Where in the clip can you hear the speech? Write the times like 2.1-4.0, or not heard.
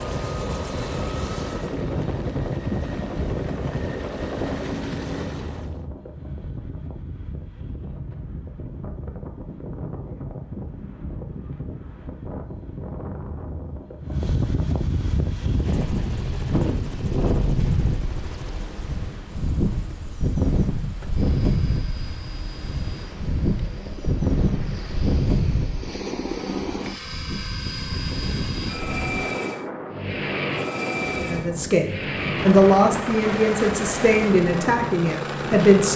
31.2-35.9.